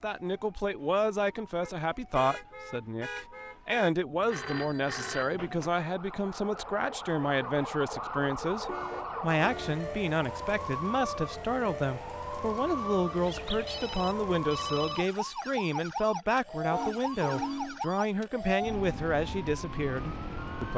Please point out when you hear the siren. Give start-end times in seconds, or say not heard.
0.0-20.7.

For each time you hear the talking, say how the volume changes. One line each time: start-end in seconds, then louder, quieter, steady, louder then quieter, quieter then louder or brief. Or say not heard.
0.0-20.7 steady.